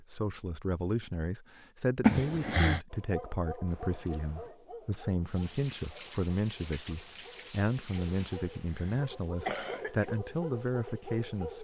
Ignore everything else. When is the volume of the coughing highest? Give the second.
2 s.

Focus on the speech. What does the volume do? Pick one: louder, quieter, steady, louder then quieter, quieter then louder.
steady.